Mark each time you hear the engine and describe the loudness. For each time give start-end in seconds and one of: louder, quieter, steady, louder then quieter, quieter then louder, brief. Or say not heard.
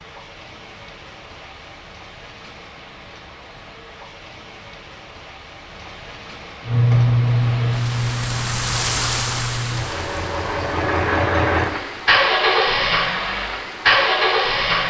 6.7-14.8 quieter then louder.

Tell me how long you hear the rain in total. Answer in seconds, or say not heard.
15 s.